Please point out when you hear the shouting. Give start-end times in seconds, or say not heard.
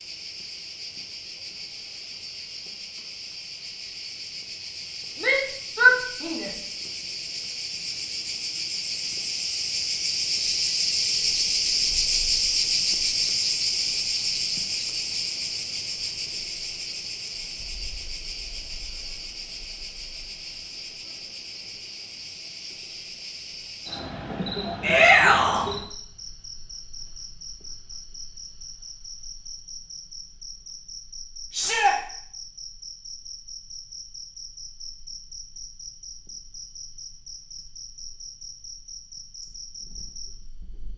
5.2-6.6, 24.8-25.6, 31.5-31.9.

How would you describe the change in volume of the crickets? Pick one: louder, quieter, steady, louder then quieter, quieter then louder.
louder then quieter.